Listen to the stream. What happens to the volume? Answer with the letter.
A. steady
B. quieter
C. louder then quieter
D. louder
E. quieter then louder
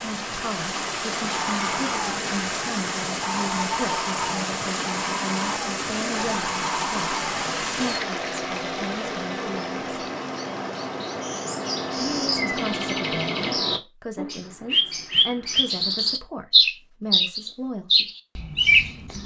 B.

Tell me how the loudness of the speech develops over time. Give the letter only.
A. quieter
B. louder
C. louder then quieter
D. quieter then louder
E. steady
E.